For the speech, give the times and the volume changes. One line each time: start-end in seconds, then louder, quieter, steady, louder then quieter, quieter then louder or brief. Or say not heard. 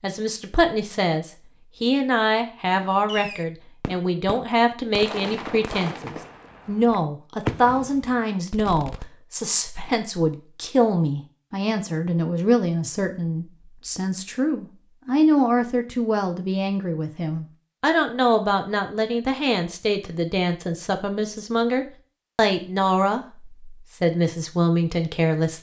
0.0-25.5 steady.